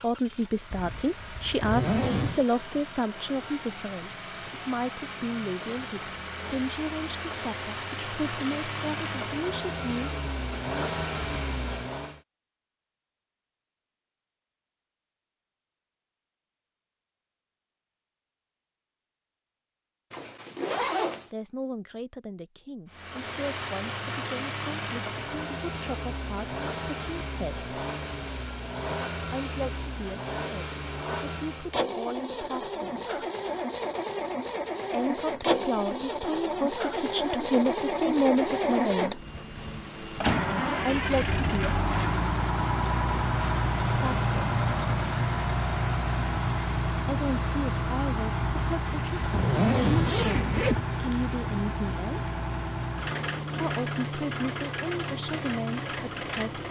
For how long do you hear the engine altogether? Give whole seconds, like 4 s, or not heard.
46 s.